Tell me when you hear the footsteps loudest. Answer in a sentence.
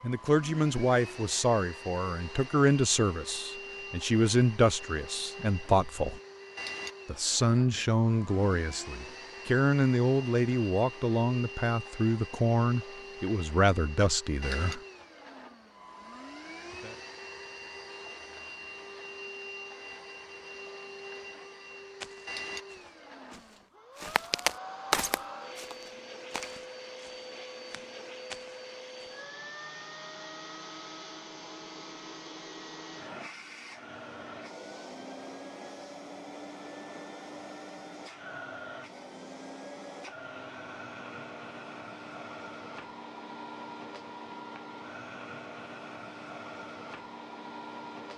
The volume of the footsteps peaks at 25 seconds.